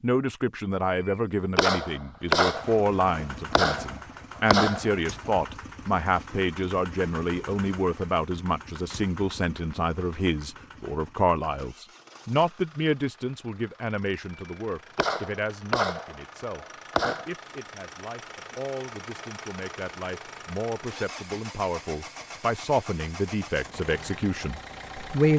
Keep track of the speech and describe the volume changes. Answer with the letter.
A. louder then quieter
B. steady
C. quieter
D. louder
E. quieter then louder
E.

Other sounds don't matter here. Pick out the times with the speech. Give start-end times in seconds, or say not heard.
0.0-25.3.